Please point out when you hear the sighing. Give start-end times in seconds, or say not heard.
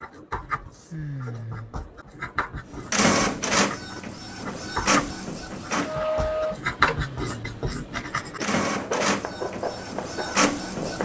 0.9-1.8, 6.8-7.5.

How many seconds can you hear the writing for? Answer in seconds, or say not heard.
11 s.